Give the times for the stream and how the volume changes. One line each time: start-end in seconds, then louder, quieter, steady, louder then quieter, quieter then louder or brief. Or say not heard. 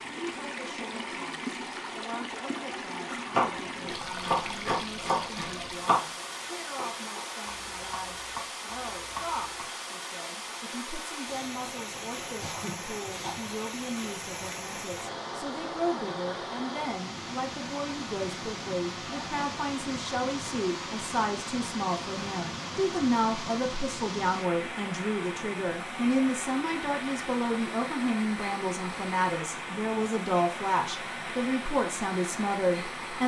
0.0-33.2 steady.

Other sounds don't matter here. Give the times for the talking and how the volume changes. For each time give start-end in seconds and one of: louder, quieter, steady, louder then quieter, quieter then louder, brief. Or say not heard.
0.2-33.2 louder.